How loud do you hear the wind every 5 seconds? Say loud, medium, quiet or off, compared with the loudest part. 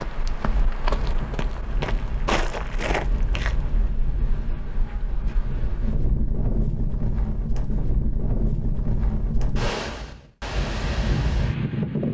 medium, loud, loud.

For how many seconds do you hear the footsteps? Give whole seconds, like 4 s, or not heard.
4 s.